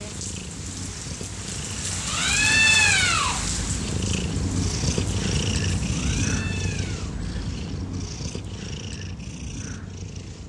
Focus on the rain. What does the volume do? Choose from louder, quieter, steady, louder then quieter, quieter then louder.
louder then quieter.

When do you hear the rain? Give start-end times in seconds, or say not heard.
0.0-7.2.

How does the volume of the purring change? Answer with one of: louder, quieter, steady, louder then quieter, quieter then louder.
louder then quieter.